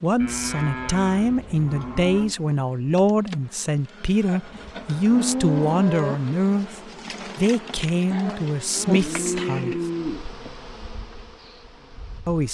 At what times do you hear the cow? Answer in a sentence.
The cow can be heard from 0.2 to 2.4 s, from 4.2 to 6.2 s and from 8.8 to 10.2 s.